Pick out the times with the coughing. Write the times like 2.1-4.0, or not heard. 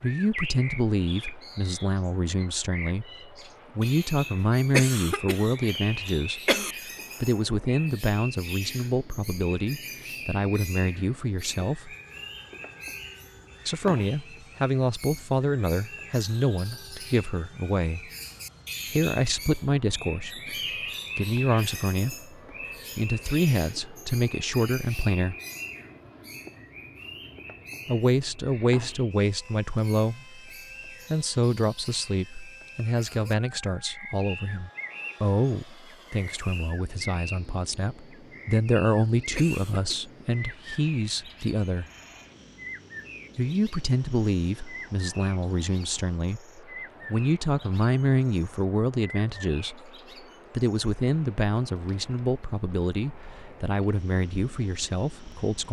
4.7-6.8, 39.4-40.0.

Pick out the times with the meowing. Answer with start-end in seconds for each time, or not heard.
not heard.